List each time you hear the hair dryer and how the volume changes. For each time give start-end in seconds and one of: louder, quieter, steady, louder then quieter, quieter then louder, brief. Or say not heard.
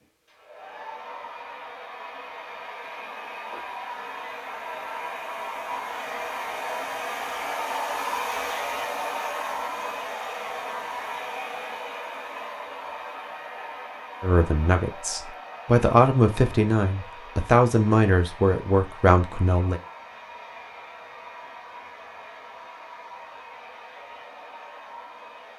0.0-25.5 louder then quieter.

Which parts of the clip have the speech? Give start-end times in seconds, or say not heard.
14.2-19.8.